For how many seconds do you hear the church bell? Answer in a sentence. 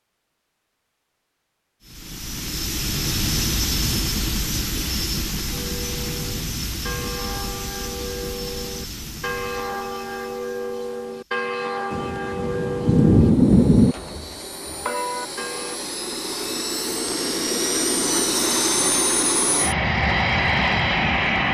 You can hear the church bell for 10 seconds altogether.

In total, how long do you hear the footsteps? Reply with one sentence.
The footsteps can't be heard in this clip.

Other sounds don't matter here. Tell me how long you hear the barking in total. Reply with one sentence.
You can't hear the barking here.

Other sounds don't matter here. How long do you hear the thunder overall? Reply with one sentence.
The thunder can be heard for 2 seconds in total.